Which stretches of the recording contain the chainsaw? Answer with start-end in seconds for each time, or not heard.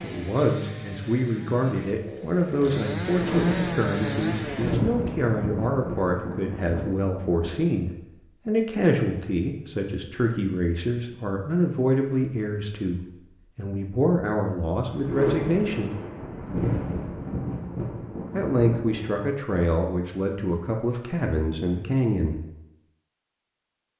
0.0-4.8.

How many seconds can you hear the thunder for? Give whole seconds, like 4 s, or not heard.
9 s.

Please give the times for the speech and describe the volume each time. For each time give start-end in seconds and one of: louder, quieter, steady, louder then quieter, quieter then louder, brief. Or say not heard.
0.0-15.9 steady
18.3-22.4 steady.